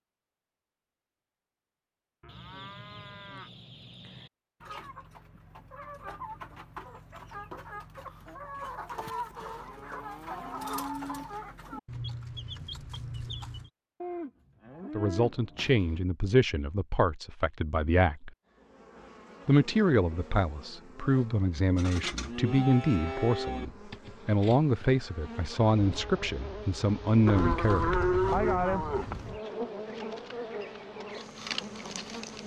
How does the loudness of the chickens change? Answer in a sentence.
The loudness of the chickens goes up.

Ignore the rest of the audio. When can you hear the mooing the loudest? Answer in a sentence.
The volume of the mooing peaks at 28 seconds.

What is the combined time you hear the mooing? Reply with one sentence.
The mooing can be heard for 9 seconds in total.